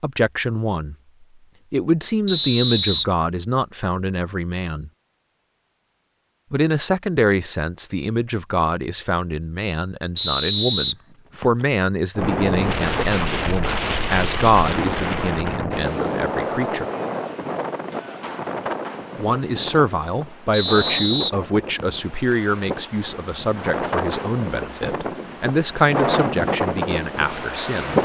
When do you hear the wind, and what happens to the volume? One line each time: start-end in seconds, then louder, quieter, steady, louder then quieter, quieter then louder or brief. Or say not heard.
12.2-28.0 quieter then louder.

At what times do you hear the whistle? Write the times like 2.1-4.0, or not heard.
2.2-3.0, 10.2-11.7, 20.5-22.0.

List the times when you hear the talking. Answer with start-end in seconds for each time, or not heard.
0.0-0.9, 1.7-4.9, 6.5-16.9, 19.1-28.0.